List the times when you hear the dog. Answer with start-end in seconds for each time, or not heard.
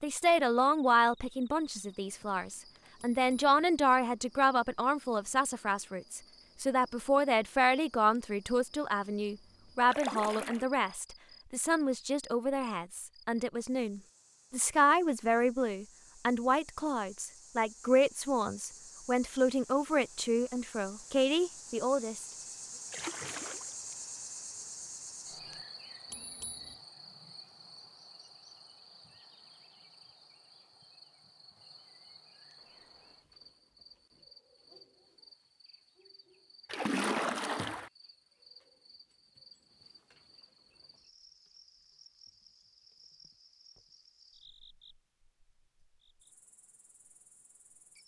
not heard.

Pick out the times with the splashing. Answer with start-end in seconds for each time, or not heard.
9.8-10.7, 22.9-23.9, 36.6-37.9.